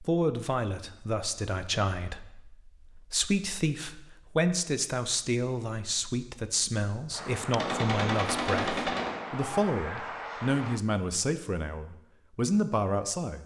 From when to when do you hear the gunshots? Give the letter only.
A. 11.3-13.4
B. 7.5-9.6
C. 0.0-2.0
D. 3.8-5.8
B.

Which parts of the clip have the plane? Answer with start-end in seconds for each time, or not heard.
7.1-10.8.